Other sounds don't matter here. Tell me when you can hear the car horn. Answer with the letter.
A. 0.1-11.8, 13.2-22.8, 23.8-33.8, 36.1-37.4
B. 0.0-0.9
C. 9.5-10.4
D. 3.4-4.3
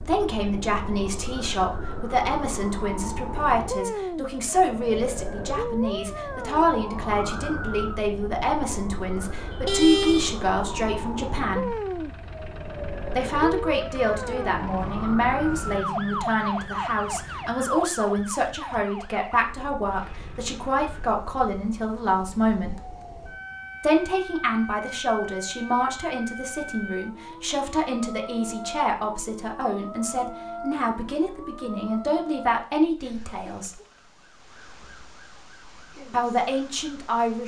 C.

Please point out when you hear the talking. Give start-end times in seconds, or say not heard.
0.1-11.8, 13.2-22.8, 23.8-33.8, 36.1-37.4.